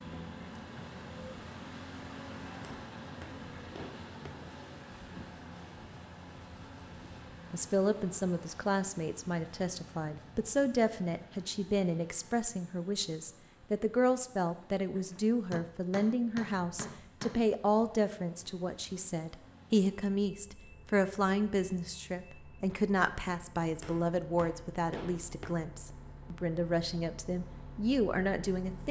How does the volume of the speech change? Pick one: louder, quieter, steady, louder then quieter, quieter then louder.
steady.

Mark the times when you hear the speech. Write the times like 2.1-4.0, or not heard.
7.5-28.8.